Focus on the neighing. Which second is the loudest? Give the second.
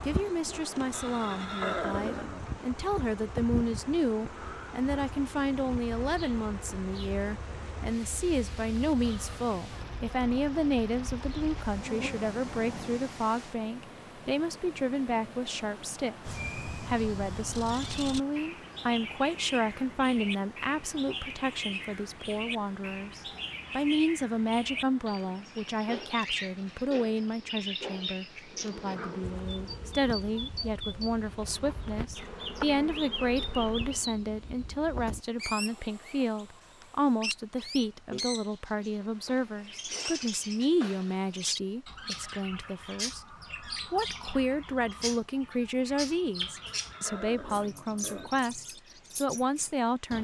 2 s.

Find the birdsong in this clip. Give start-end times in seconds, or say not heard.
16.2-50.1.